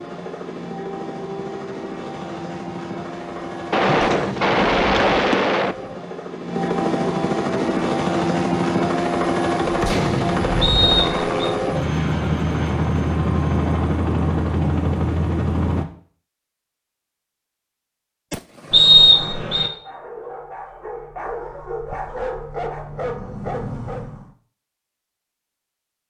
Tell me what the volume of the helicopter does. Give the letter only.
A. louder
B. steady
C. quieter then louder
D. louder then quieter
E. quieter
A.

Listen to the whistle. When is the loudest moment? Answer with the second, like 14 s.
19 s.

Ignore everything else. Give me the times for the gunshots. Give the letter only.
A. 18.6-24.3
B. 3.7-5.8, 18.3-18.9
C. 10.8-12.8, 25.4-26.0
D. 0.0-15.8
B.